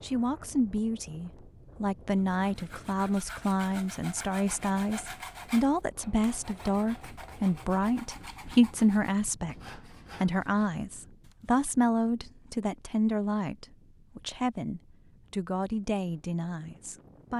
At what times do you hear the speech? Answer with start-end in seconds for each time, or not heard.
0.0-9.6, 10.2-17.3.